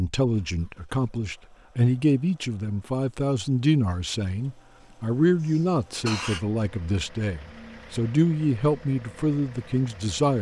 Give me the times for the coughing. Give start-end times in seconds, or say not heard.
5.4-6.5.